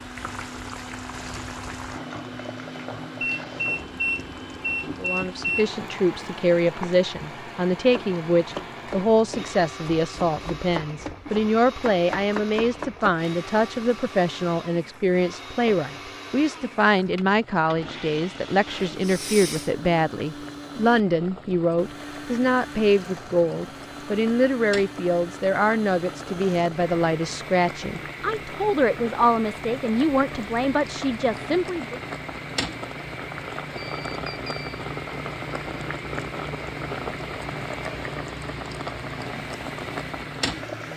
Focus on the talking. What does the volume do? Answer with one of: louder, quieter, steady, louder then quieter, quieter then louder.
steady.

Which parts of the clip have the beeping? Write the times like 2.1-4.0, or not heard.
3.2-5.7, 18.6-19.7, 33.8-34.8.